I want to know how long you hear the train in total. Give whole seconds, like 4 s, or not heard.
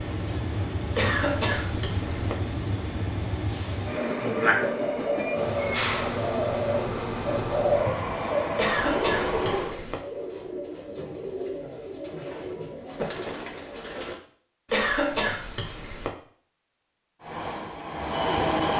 11 s.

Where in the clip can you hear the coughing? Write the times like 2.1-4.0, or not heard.
0.9-2.4, 8.6-9.9, 14.7-16.1.